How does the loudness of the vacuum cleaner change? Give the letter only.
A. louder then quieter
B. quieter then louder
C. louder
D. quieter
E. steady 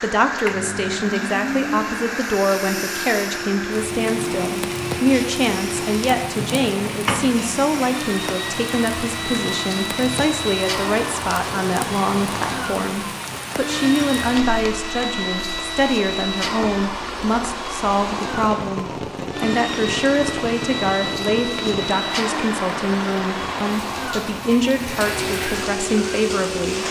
E.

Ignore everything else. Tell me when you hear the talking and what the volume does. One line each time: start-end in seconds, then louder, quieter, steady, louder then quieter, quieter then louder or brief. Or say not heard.
0.0-26.8 steady.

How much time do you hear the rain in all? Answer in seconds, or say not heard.
27 s.